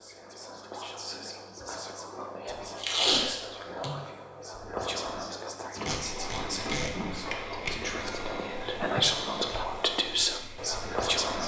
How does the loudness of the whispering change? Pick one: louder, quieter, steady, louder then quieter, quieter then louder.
louder.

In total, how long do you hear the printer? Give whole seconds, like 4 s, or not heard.
6 s.